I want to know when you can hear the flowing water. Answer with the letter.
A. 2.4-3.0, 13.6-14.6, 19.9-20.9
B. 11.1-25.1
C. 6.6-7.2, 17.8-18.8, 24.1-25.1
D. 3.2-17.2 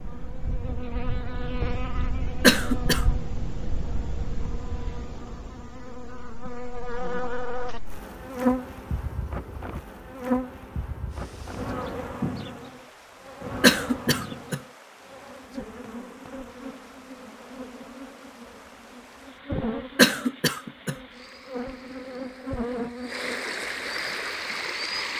B.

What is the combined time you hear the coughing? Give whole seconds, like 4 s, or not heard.
3 s.